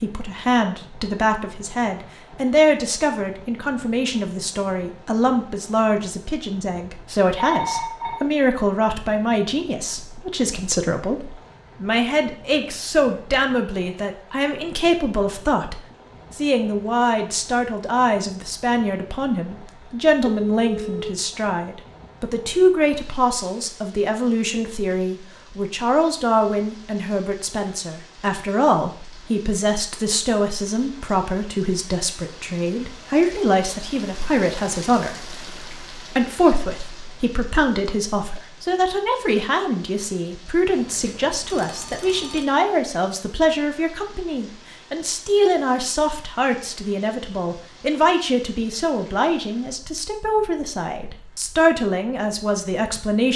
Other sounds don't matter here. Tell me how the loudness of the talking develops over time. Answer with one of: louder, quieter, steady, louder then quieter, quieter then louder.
steady.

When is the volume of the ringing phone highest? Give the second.
8 s.